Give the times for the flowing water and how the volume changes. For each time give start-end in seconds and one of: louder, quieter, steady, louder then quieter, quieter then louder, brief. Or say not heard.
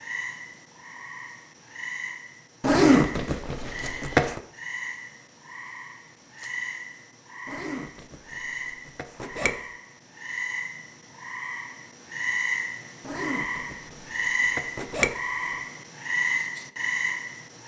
not heard.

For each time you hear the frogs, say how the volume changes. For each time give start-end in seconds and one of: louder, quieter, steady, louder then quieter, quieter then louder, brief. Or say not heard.
0.0-17.6 louder.